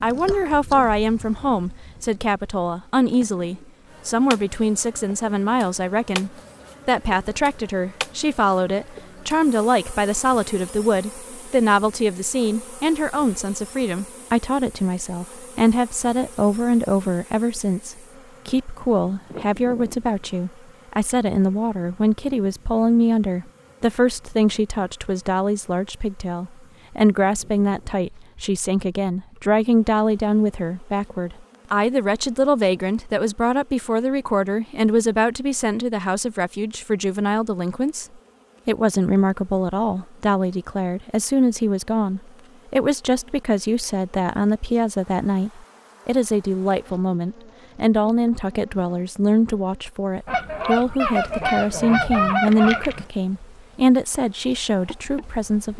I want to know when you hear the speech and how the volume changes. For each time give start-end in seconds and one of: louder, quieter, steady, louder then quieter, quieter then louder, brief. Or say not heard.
0.0-38.0 steady
38.6-55.7 steady.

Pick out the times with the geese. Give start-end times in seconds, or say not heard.
50.2-53.0.